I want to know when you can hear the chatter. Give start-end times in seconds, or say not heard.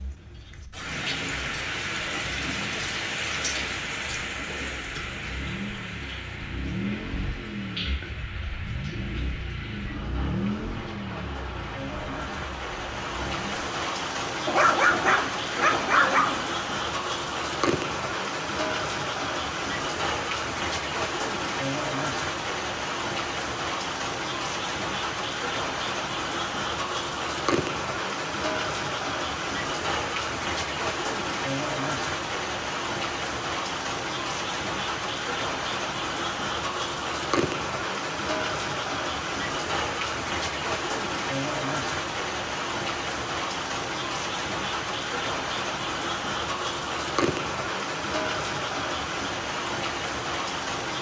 not heard.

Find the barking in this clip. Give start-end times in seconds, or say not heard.
14.4-16.4.